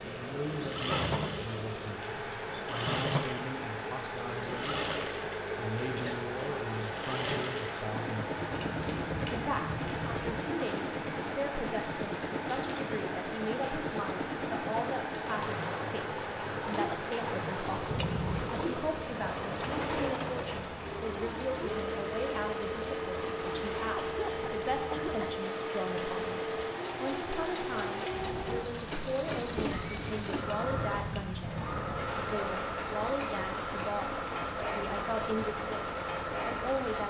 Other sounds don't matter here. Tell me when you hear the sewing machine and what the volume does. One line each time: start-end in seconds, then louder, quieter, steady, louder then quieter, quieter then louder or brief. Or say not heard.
0.0-37.0 steady.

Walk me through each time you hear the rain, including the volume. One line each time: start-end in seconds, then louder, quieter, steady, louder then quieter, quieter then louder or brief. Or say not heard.
0.0-37.0 steady.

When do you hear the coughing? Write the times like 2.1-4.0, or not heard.
24.0-25.4.